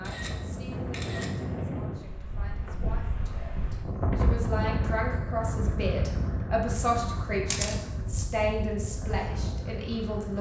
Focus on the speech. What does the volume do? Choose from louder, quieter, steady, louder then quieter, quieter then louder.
louder.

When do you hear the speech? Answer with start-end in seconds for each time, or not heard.
0.0-10.3.